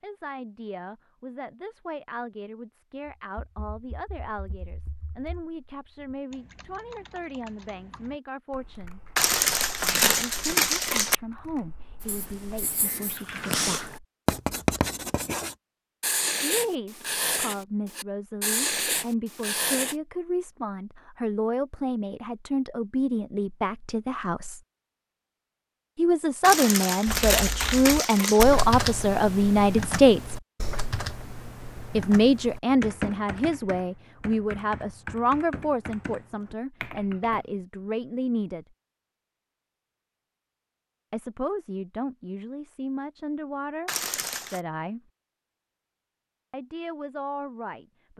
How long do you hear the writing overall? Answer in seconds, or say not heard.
8 s.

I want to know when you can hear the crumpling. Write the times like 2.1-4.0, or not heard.
9.2-11.2, 26.4-28.4, 43.9-44.6.